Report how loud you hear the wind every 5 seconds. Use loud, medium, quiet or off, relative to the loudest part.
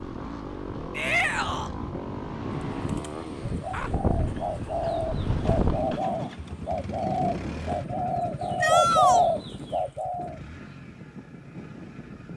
loud, loud, medium.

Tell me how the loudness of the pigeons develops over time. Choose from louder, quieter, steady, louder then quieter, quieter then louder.
louder.